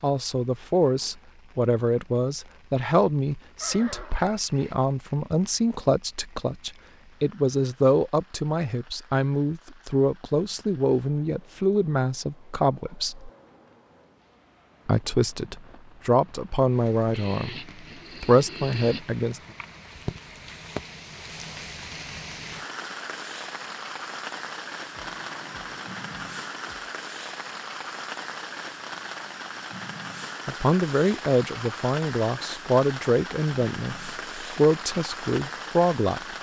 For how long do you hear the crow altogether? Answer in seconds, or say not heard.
not heard.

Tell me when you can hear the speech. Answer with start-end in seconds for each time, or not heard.
0.0-13.3, 14.8-19.4, 30.4-36.3.